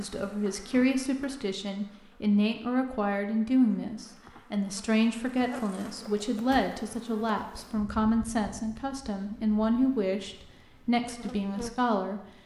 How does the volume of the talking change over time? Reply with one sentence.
The loudness of the talking stays about the same.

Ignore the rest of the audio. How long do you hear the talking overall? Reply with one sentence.
You can hear the talking for 12 seconds altogether.